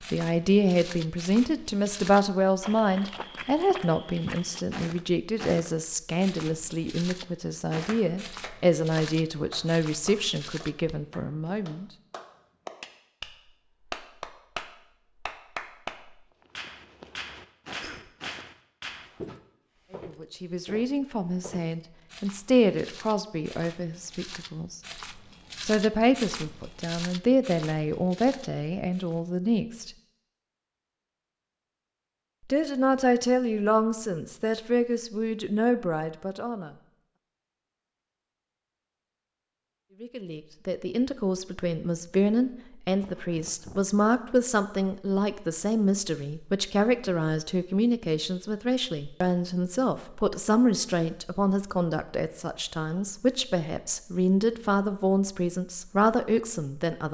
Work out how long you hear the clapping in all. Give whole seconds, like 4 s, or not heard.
11 s.